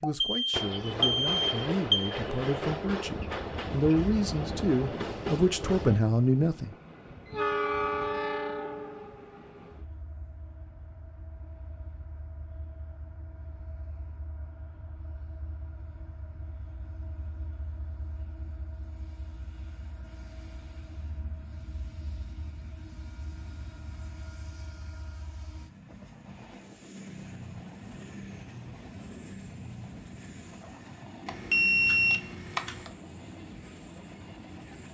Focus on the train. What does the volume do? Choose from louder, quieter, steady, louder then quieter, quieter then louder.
quieter then louder.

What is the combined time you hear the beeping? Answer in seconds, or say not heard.
4 s.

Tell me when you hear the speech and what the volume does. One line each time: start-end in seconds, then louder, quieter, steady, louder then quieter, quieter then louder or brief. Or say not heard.
0.0-6.8 louder.